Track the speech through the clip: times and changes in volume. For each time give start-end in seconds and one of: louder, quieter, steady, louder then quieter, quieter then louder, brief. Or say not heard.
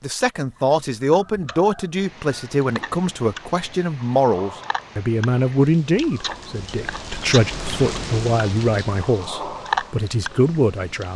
0.0-11.1 steady.